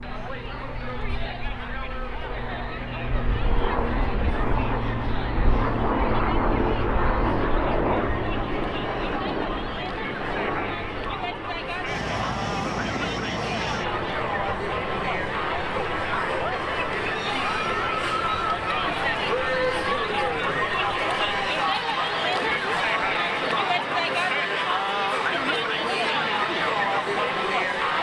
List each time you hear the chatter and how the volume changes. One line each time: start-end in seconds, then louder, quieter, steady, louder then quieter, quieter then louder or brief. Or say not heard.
0.0-27.9 louder.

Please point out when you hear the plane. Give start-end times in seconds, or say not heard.
0.0-27.9.